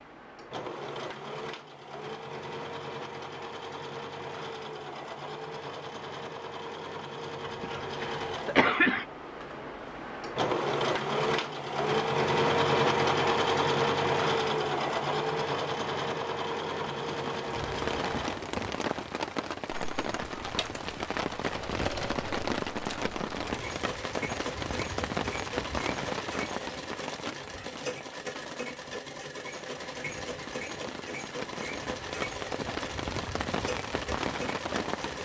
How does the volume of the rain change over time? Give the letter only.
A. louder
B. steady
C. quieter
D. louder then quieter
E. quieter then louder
E.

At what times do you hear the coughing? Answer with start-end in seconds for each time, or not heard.
7.5-9.1.